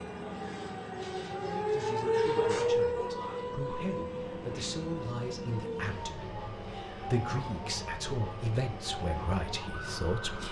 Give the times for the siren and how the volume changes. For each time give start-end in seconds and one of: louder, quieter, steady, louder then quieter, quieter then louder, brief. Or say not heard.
0.0-10.4 quieter.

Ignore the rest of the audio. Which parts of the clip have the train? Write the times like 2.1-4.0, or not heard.
0.0-10.4.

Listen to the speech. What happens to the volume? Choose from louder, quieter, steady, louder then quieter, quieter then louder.
louder.